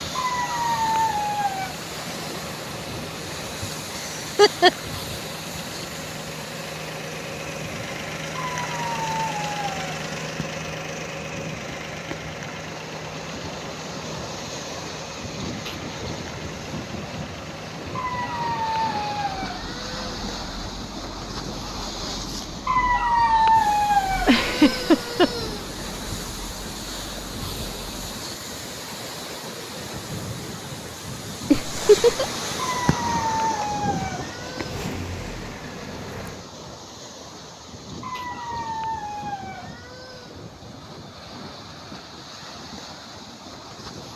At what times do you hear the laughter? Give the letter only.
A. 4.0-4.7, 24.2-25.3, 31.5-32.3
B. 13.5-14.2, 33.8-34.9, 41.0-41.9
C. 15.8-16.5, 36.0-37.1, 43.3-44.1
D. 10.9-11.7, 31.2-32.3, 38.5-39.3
A.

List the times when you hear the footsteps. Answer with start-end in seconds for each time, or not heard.
not heard.